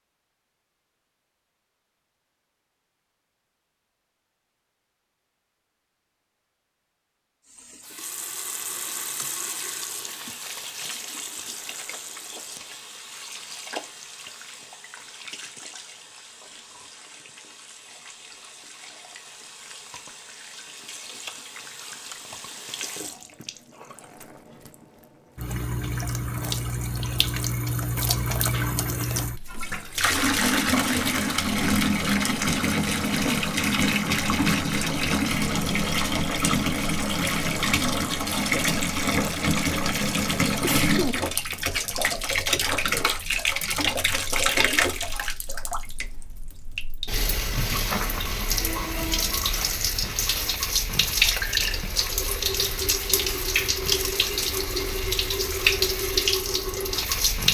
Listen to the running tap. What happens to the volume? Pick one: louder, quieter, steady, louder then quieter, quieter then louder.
louder.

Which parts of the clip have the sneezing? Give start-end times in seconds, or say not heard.
40.6-41.1.